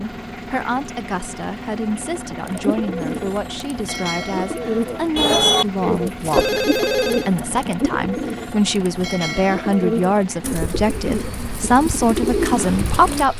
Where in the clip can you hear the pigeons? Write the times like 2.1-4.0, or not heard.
2.5-13.2.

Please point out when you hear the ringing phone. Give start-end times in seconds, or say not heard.
6.3-7.3.